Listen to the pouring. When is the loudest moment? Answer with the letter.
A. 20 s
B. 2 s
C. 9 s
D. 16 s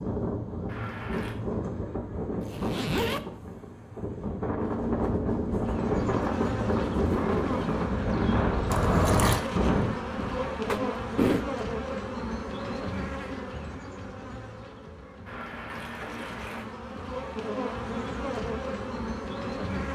C.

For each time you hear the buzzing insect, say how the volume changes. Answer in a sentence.
The buzzing insect can be heard from 5.5 to 19.9 s, getting quieter then louder.